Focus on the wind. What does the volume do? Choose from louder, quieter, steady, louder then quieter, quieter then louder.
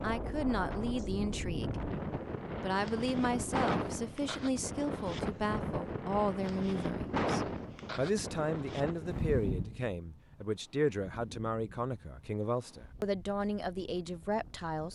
quieter.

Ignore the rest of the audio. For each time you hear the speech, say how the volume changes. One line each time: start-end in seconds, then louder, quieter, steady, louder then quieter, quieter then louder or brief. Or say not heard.
0.0-1.9 brief
2.6-14.8 steady.